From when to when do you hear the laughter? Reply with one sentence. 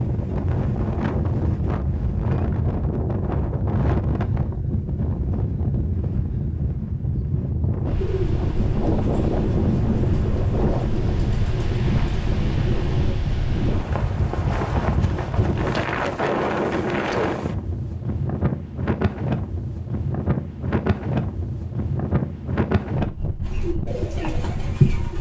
You can't hear the laughter here.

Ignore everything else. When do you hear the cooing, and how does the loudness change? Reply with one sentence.
The cooing can be heard from 8.0 to 13.2 s, at a steady volume; and briefly from 23.4 to 25.1 s.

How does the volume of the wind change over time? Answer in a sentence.
The loudness of the wind stays about the same.